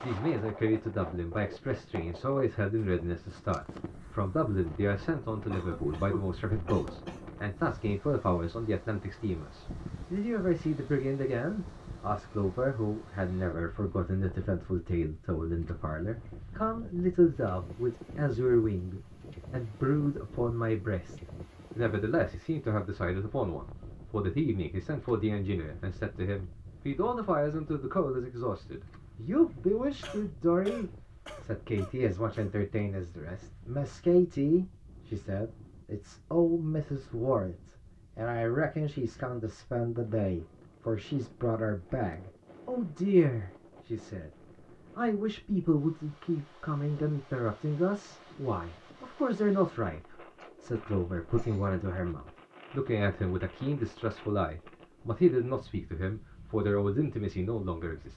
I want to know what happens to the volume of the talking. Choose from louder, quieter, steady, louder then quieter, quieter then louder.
steady.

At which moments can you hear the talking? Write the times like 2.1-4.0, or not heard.
0.0-44.3, 45.0-58.1.